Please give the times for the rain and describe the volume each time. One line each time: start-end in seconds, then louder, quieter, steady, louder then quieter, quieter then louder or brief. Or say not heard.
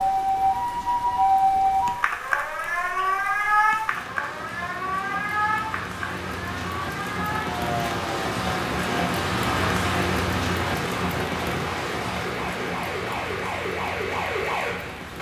0.0-15.1 louder then quieter.